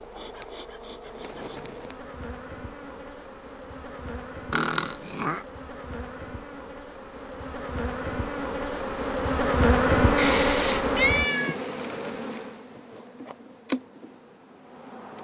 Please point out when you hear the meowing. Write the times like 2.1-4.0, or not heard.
4.5-5.4, 10.2-11.6.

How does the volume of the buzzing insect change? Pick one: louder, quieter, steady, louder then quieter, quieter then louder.
louder then quieter.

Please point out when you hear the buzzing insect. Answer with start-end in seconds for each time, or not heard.
0.0-15.1.